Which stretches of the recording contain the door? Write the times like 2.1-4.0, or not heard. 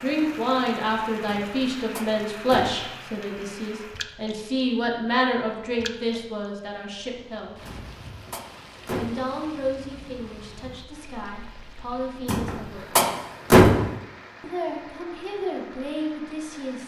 1.2-2.8, 7.7-9.2, 12.2-13.9.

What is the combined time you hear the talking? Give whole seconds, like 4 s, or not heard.
14 s.